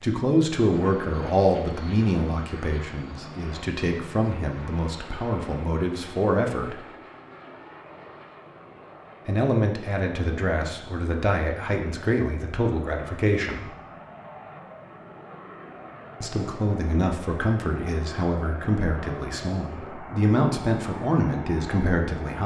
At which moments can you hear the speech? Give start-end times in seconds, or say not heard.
0.0-6.8, 9.2-13.7, 16.2-22.4.